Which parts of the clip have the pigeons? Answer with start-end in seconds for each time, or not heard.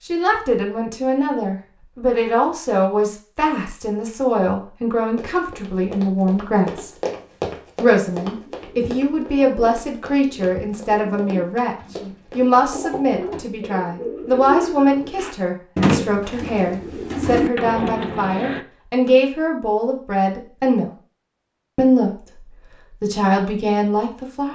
8.4-18.6.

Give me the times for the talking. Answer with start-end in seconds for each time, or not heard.
0.0-6.9, 7.8-20.9, 21.8-22.4, 23.0-24.5.